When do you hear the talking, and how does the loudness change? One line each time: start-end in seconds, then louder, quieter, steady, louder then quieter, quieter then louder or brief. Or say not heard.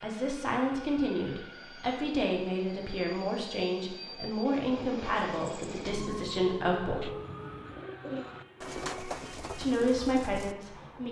0.0-7.1 steady
9.6-11.0 brief.